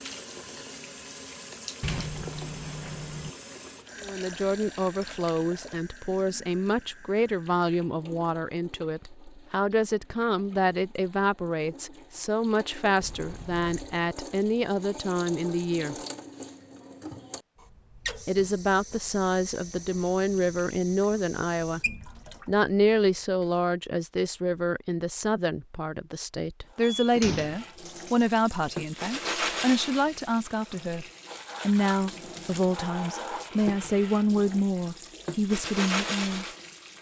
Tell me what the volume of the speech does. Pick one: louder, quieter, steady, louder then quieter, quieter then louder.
steady.